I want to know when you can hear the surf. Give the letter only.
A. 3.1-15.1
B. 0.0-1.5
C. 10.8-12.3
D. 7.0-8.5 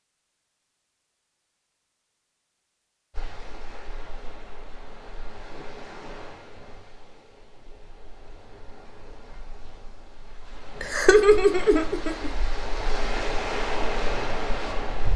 A.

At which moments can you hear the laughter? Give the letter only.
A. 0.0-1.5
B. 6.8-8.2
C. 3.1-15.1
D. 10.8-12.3
D.